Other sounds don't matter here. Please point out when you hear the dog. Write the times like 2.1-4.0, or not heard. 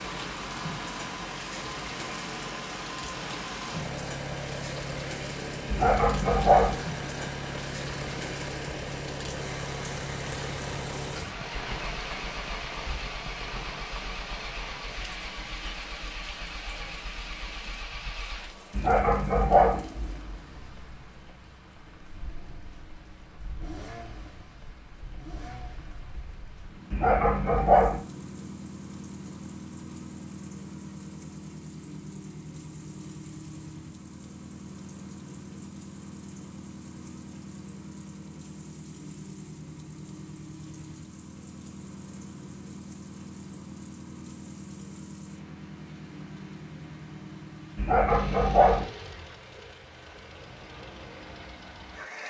5.7-6.8, 18.7-19.8, 26.9-28.0, 47.8-48.9.